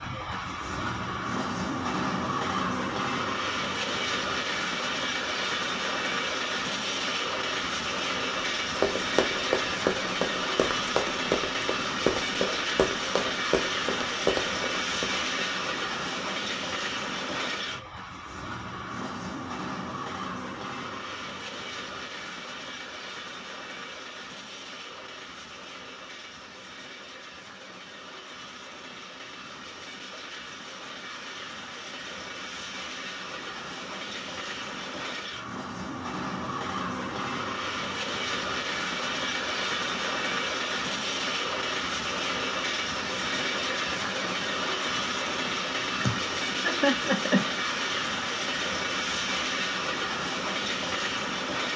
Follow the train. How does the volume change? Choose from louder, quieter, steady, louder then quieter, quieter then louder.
quieter then louder.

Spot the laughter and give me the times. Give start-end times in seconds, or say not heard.
46.0-47.5.